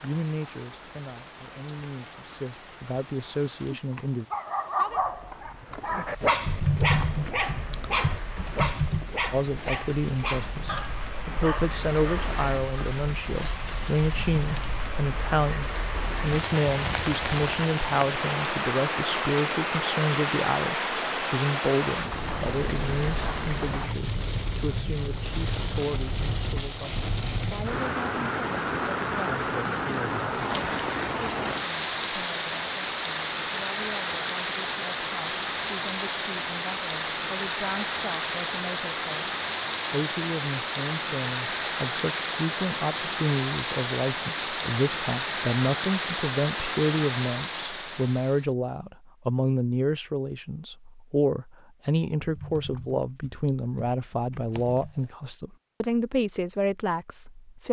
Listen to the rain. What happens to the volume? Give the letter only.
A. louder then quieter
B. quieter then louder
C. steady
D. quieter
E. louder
E.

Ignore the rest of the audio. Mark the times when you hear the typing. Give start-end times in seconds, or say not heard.
6.5-9.1, 52.2-55.0.